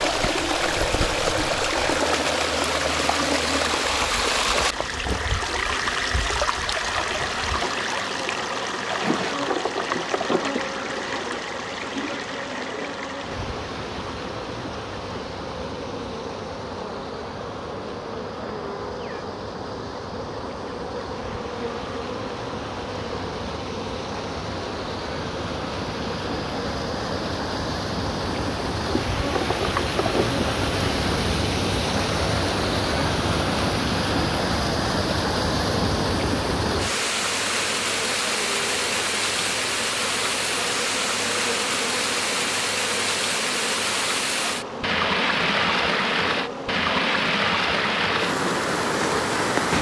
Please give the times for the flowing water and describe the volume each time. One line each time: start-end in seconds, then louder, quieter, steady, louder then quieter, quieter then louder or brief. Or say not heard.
0.0-49.7 quieter then louder.